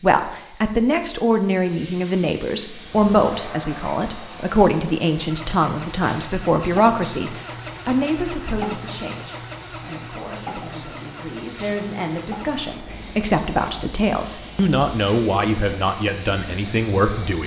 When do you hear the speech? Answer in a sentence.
You can hear the speech from 0.0 to 17.4 s.